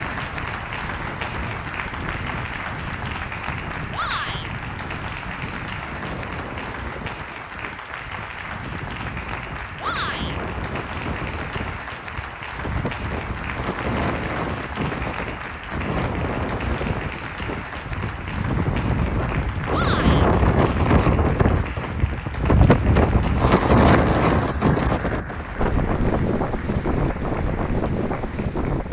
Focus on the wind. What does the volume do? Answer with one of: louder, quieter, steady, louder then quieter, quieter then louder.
louder.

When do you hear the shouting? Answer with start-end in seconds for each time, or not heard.
3.9-4.5, 9.8-10.3, 19.7-20.2.